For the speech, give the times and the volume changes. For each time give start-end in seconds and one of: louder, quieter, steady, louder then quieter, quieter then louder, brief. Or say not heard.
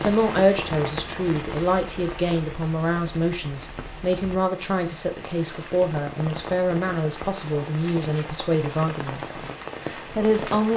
0.0-10.7 steady.